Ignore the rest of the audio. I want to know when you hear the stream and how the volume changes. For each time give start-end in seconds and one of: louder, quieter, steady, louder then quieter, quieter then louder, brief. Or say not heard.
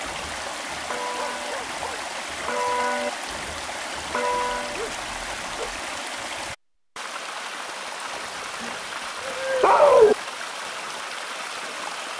0.0-12.1 steady.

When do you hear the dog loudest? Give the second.
10 s.